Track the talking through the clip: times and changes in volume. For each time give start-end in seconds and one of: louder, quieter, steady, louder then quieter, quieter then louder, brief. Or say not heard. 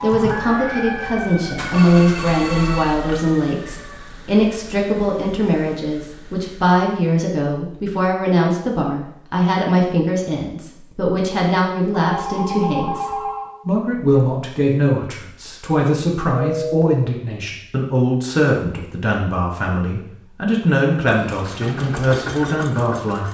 0.0-23.2 steady.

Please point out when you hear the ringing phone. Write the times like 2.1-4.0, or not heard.
1.7-3.1, 12.0-13.6, 16.3-16.9.